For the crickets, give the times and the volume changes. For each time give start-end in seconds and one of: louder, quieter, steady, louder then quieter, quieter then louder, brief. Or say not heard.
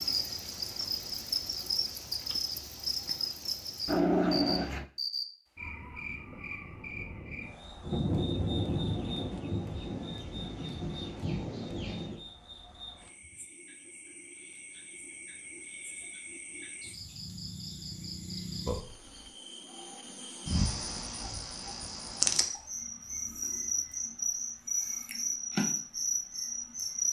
0.0-27.0 quieter then louder.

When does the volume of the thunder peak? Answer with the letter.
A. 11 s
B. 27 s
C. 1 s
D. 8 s
D.